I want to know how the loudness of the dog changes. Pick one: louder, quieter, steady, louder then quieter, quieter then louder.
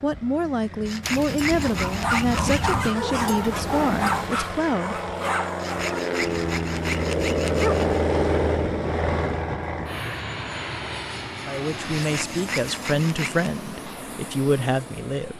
quieter then louder.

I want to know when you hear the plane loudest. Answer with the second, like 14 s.
8 s.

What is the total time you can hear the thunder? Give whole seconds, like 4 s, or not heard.
3 s.